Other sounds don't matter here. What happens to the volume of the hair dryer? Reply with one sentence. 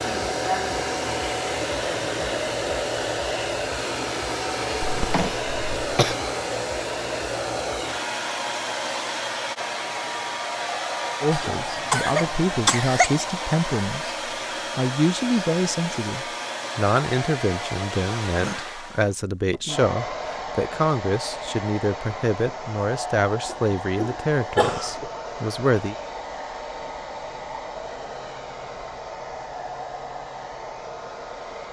The volume of the hair dryer goes down.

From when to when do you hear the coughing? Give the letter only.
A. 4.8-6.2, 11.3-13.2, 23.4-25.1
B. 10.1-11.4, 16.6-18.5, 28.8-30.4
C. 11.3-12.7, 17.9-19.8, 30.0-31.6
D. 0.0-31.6
A.